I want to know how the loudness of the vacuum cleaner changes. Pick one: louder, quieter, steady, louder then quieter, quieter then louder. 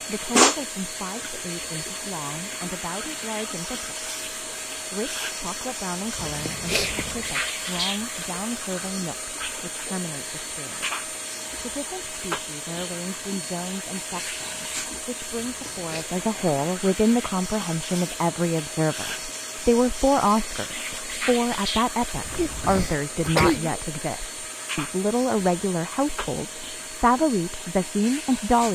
quieter.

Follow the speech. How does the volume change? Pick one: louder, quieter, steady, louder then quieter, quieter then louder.
louder.